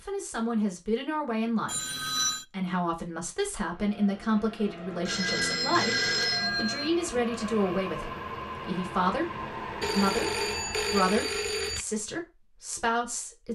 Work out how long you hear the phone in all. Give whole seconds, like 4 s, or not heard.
5 s.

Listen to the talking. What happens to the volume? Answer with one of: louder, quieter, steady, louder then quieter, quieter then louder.
steady.